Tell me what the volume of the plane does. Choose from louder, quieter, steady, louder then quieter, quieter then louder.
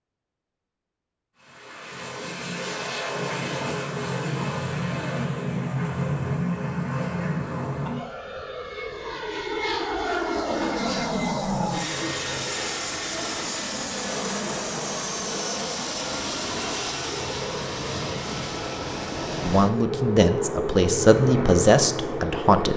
steady.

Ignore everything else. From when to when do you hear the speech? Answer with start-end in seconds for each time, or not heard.
19.4-22.7.